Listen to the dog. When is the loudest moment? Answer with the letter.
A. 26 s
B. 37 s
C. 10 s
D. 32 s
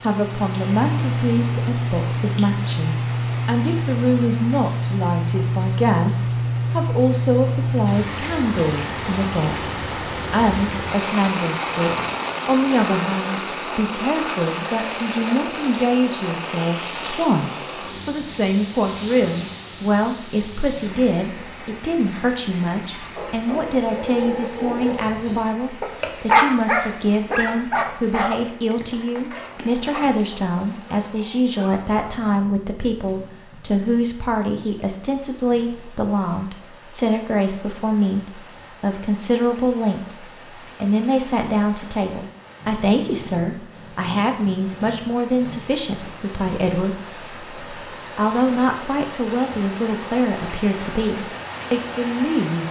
A.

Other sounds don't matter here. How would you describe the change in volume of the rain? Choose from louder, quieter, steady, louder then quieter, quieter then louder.
quieter then louder.